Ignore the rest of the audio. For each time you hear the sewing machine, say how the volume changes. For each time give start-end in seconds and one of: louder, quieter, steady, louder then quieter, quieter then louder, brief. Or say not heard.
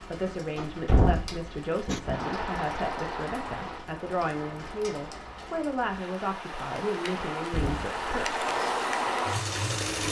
1.9-10.0 quieter then louder.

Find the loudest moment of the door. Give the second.
1 s.